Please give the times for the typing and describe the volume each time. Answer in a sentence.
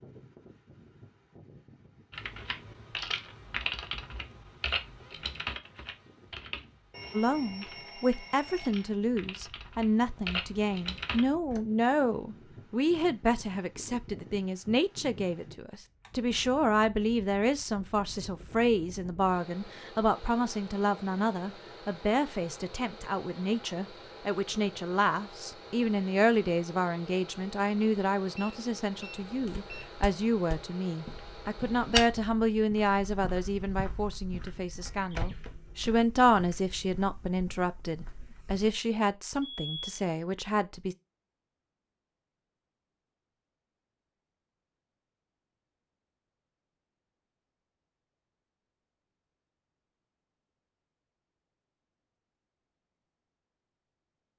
You can hear the typing from 2.1 to 11.6 s, getting quieter then louder.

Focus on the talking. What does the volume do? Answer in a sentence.
The volume of the talking stays about the same.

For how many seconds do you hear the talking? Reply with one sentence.
The talking can be heard for 34 seconds in total.